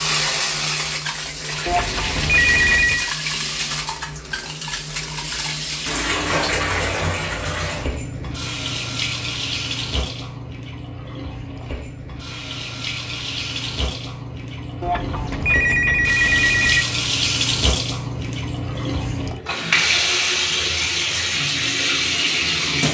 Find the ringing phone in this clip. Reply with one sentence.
The ringing phone can be heard from 1.6 to 3.1 s and from 14.8 to 16.9 s.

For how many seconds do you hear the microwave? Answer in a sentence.
The microwave can't be heard in this clip.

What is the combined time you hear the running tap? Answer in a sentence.
You can hear the running tap for 23 seconds altogether.